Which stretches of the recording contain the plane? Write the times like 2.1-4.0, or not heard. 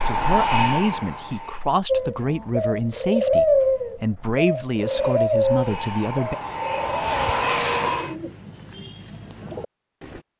0.0-1.7, 4.8-8.2.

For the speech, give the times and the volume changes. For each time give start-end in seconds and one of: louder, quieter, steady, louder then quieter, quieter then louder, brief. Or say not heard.
0.0-6.3 steady.